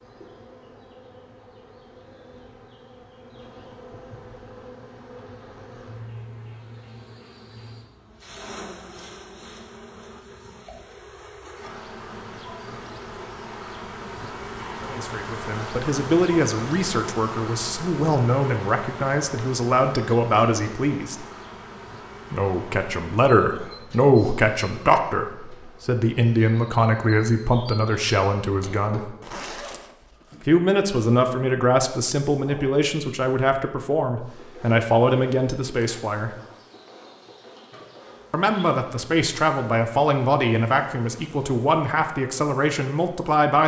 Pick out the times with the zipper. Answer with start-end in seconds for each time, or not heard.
29.2-30.4.